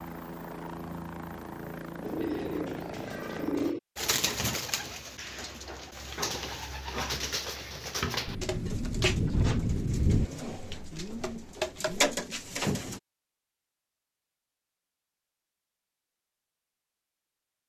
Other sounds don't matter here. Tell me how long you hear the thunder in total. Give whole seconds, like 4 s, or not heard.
2 s.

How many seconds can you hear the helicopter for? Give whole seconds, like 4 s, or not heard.
4 s.